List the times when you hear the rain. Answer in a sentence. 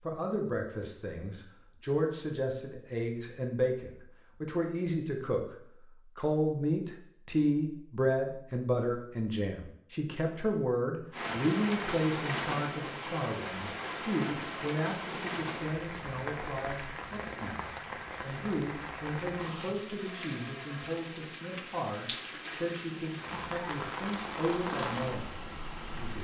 You can hear the rain from 11.1 to 26.1 s.